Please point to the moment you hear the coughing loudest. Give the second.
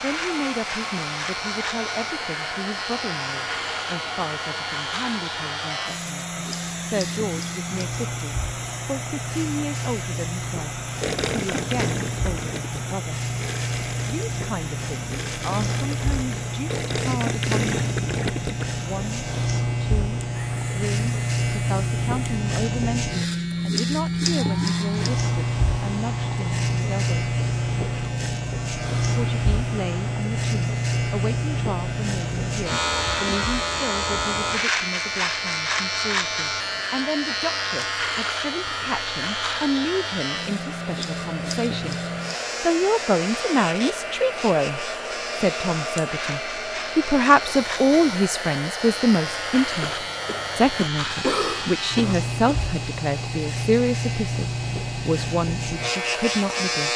51 s.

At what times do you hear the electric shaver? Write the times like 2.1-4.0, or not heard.
0.0-56.9.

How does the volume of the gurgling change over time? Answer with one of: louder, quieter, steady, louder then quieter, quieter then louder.
quieter then louder.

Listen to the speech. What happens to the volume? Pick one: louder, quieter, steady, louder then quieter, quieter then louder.
louder.